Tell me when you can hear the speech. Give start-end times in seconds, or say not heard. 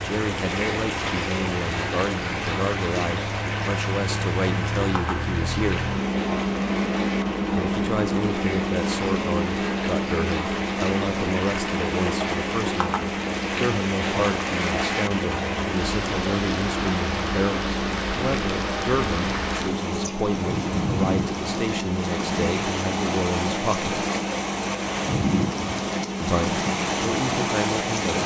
0.0-5.9, 7.5-23.9, 26.2-28.2.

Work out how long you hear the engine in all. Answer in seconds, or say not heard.
28 s.